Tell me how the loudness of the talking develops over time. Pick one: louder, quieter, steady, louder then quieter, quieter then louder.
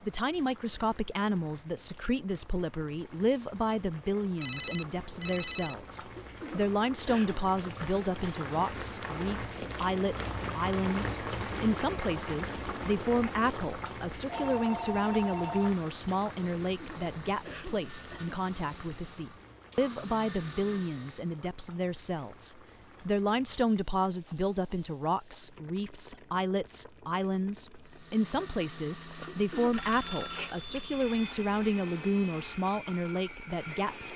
steady.